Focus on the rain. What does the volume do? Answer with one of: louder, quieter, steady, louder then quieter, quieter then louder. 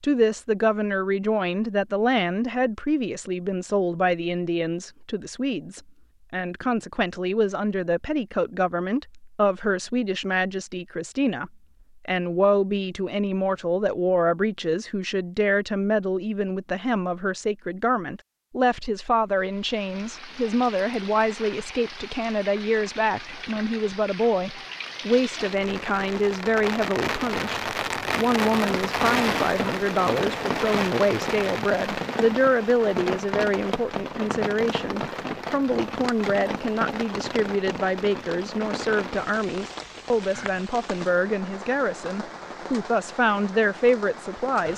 louder then quieter.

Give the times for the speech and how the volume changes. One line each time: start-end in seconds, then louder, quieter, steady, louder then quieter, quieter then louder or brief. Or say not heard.
0.0-44.7 steady.